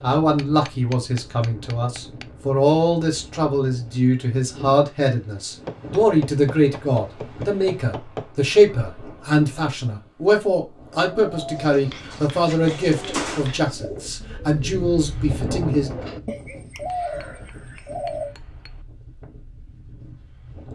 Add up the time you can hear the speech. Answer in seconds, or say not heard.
16 s.